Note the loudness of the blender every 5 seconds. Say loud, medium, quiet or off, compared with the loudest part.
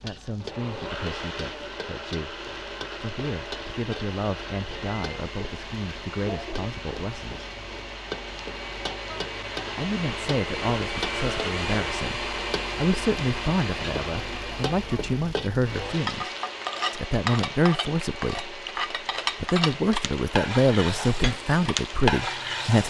medium, medium, loud, medium, medium.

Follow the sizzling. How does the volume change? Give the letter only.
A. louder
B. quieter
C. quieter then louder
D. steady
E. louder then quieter
A.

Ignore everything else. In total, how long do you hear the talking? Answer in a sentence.
You can hear the talking for 19 seconds altogether.